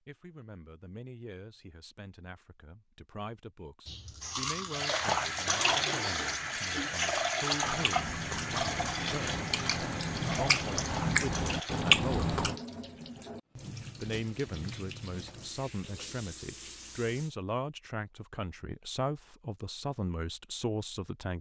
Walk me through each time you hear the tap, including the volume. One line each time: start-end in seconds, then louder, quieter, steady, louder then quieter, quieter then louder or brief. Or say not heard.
4.7-17.4 quieter.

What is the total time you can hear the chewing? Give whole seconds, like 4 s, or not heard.
9 s.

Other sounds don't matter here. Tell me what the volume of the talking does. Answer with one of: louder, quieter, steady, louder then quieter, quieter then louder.
louder.